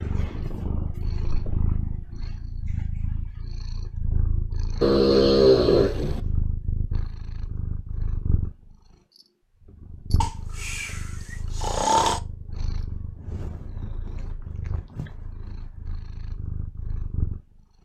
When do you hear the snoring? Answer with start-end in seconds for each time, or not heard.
4.8-6.2, 10.2-12.2.